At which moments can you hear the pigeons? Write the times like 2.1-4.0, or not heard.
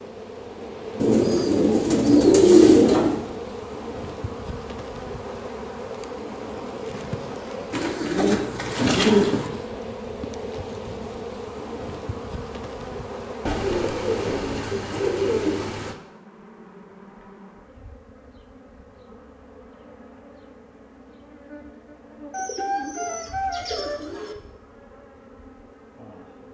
1.0-3.2, 7.7-9.5, 13.4-15.9, 22.3-24.4.